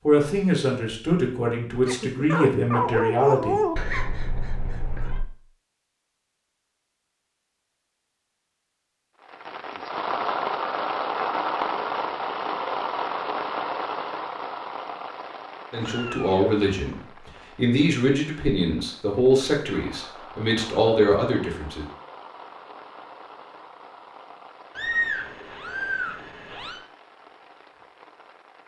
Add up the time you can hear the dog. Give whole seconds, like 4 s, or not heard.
2 s.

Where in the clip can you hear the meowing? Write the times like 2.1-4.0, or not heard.
3.8-5.2, 15.7-17.1, 24.8-26.9.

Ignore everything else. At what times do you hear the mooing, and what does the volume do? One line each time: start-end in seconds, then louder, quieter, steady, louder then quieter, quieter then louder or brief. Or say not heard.
not heard.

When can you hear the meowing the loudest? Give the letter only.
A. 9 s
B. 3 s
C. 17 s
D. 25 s
D.